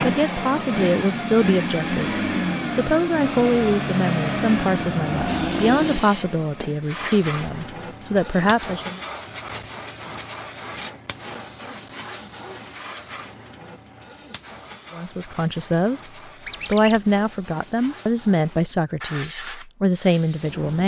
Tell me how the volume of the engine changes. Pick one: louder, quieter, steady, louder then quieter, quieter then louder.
steady.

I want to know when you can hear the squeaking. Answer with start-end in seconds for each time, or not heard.
16.4-17.0.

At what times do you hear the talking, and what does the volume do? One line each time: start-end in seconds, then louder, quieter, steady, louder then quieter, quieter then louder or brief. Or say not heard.
0.0-9.0 steady
14.9-16.0 brief
16.6-20.8 quieter then louder.